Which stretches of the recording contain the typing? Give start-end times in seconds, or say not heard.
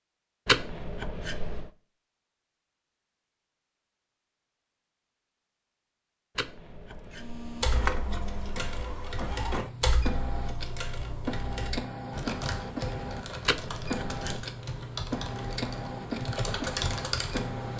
7.6-17.7.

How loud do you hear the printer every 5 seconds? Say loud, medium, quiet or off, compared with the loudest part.
off, loud, loud, loud.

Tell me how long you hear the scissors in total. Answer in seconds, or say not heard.
4 s.